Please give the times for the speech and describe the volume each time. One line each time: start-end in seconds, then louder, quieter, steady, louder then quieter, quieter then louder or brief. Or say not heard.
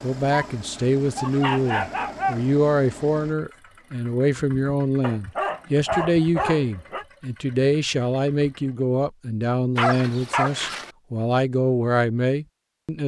0.0-13.0 steady.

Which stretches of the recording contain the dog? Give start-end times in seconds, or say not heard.
0.3-2.4, 5.0-7.0, 9.8-10.9.